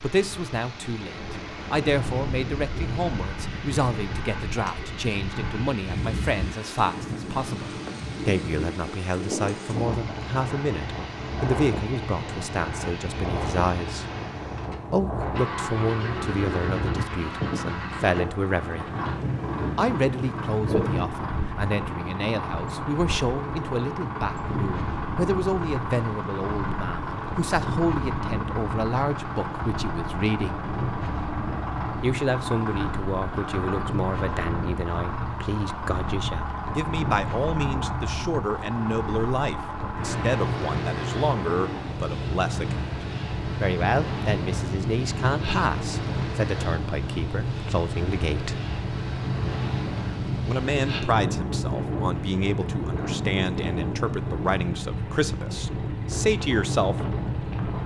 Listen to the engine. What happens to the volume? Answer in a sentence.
The loudness of the engine goes up.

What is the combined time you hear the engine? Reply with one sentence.
You can hear the engine for 58 seconds altogether.